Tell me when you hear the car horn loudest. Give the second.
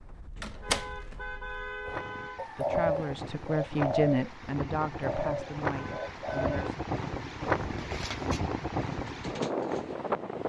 2 s.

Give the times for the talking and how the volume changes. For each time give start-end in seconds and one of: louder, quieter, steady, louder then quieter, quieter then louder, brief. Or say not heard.
2.4-6.8 louder then quieter.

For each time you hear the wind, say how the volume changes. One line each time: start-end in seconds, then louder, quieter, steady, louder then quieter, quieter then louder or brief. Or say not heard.
0.0-10.4 louder.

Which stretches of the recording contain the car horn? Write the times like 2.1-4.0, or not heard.
0.6-2.5, 5.7-6.8.